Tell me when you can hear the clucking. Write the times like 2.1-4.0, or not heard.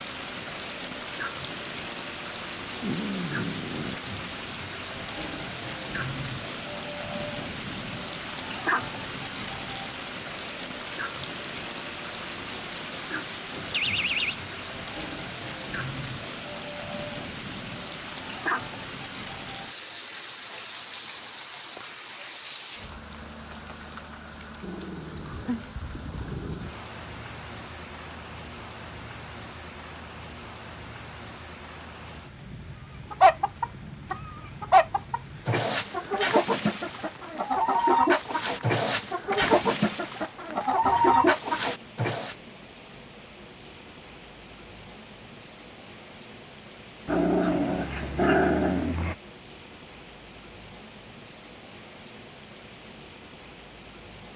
33.1-42.4.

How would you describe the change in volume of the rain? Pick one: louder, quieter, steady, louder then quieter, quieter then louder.
quieter.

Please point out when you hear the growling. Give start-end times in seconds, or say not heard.
2.8-4.0, 24.6-26.8, 47.0-49.1.